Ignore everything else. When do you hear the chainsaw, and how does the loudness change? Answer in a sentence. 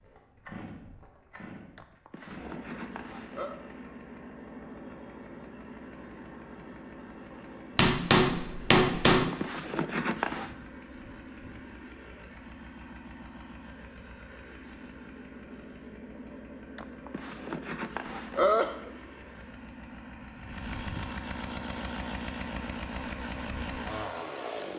You can hear the chainsaw from 0.0 to 24.7 s, getting louder.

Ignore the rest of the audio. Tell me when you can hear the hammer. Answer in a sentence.
The hammer can be heard from 7.8 to 9.2 s.